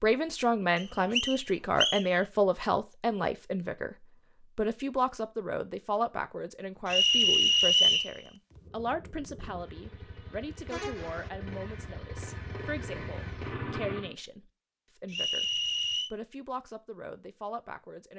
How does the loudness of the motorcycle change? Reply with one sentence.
The volume of the motorcycle goes up.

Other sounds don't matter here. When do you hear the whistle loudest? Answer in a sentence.
The loudest moment of the whistle is at 8 seconds.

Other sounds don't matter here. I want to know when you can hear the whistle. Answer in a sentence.
The whistle can be heard from 0.8 to 2.0 s, from 6.8 to 8.1 s and from 15.1 to 16.1 s.